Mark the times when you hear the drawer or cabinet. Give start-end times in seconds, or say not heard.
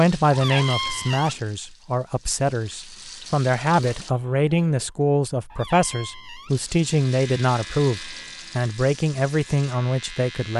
0.3-1.4, 5.5-6.6.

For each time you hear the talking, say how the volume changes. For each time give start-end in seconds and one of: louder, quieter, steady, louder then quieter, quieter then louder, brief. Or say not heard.
0.0-10.5 steady.